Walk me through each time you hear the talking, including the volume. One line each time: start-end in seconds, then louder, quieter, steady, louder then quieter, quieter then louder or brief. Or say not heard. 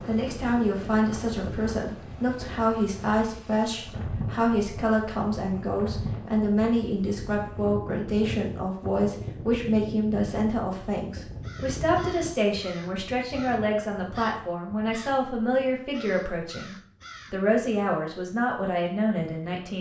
0.1-19.7 steady.